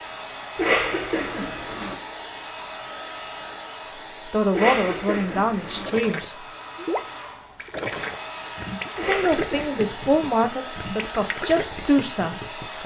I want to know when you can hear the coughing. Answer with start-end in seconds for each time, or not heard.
0.6-1.9, 4.5-6.0, 8.9-10.2.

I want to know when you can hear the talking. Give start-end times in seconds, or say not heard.
4.2-6.3, 9.1-12.8.